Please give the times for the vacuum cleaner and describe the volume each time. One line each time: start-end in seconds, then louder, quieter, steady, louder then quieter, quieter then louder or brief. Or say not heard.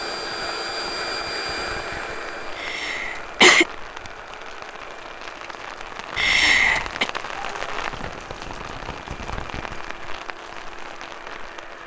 0.0-11.8 quieter.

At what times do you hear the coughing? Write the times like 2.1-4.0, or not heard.
2.5-3.6, 6.2-7.0.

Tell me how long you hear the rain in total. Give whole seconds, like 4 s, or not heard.
12 s.